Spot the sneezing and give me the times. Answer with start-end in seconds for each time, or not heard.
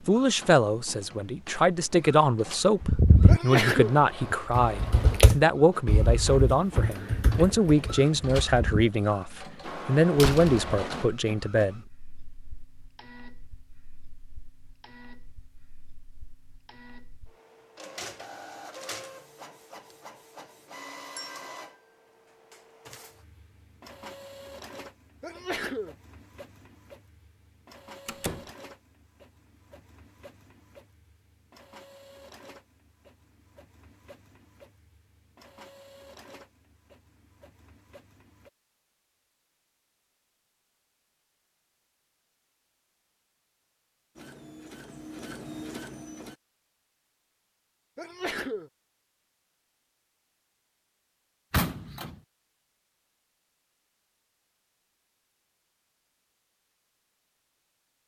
3.2-4.0, 25.2-25.9, 48.0-48.7.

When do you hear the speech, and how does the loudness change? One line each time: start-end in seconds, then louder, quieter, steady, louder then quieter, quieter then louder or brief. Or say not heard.
0.1-11.8 steady.